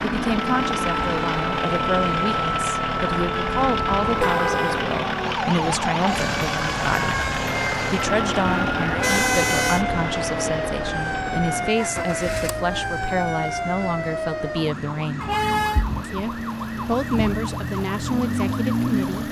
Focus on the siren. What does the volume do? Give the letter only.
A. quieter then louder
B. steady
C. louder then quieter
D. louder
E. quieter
B.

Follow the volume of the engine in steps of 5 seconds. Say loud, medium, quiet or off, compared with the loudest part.
loud, loud, medium, quiet.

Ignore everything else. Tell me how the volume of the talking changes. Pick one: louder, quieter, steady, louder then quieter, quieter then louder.
steady.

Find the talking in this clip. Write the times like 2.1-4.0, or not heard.
0.0-15.3, 16.0-19.2.